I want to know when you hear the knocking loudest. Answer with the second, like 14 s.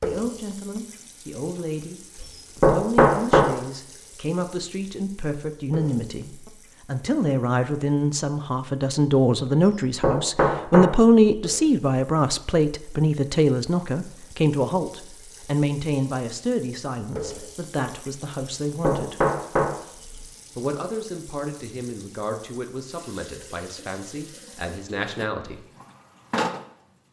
3 s.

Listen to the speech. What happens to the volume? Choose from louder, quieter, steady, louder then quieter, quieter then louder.
louder then quieter.